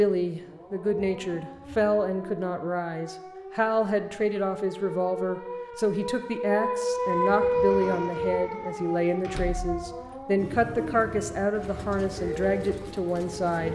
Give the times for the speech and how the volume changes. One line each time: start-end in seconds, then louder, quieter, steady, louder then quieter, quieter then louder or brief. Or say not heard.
0.0-13.7 steady.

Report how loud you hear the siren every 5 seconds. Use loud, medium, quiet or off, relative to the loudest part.
quiet, loud, quiet.